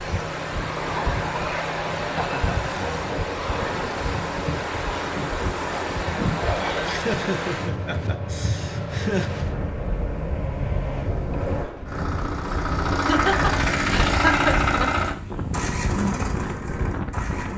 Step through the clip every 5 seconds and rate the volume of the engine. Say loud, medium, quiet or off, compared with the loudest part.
medium, medium, loud, medium.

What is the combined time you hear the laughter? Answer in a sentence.
The laughter can be heard for 5 seconds in total.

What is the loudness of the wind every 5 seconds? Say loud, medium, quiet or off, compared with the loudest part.
loud, loud, medium, loud.